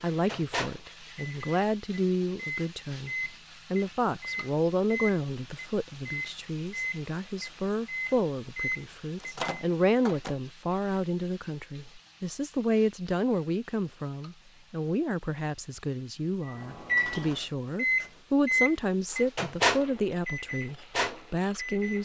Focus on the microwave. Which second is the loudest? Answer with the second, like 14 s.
18 s.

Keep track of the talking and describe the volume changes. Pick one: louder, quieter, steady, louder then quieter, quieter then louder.
steady.